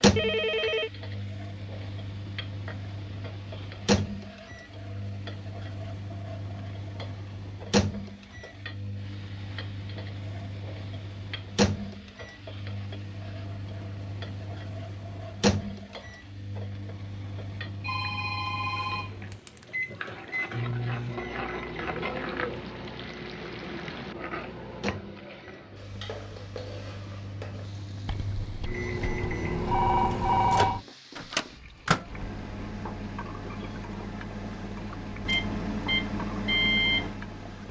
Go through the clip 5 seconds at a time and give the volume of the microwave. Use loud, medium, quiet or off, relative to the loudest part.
loud, medium, medium, medium, medium, medium, medium, loud.